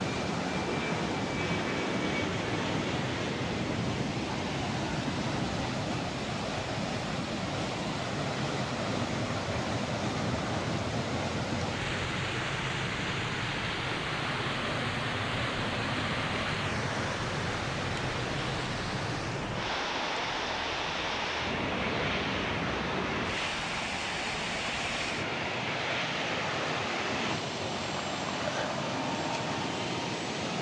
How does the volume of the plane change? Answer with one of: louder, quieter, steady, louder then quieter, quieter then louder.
steady.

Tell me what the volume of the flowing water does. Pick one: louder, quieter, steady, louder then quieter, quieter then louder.
steady.